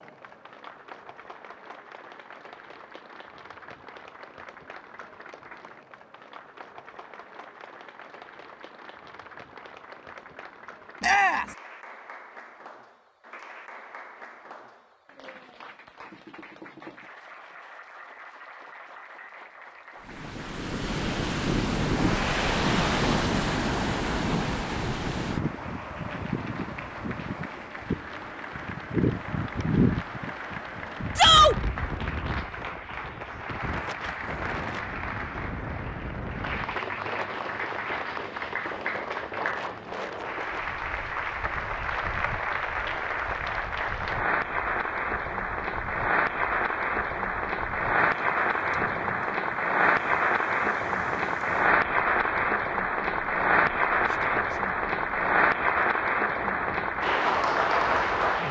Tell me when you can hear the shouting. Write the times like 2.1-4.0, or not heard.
11.0-11.4, 31.1-31.6, 54.0-54.8.